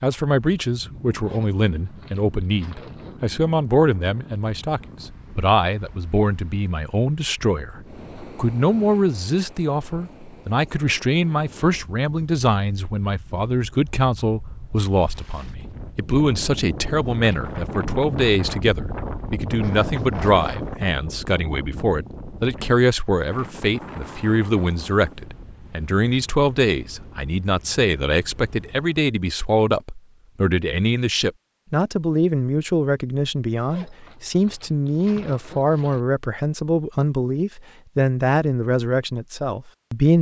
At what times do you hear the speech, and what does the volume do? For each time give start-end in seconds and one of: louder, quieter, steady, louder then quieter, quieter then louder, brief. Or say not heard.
0.0-40.1 steady.